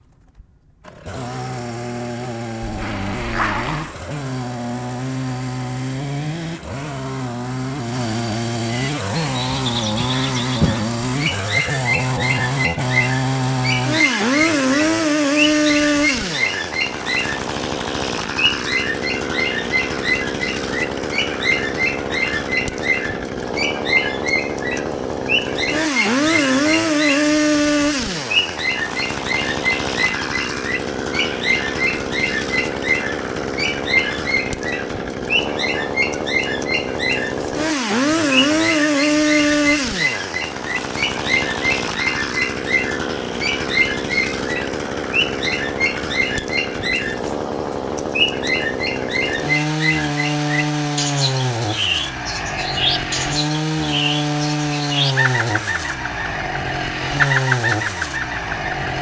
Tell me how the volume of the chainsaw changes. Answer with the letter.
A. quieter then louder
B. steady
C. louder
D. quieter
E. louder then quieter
B.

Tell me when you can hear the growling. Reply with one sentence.
The growling can be heard from 2.6 to 4.0 s.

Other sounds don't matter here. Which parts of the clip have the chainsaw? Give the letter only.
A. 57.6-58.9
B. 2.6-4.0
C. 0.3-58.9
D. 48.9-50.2
C.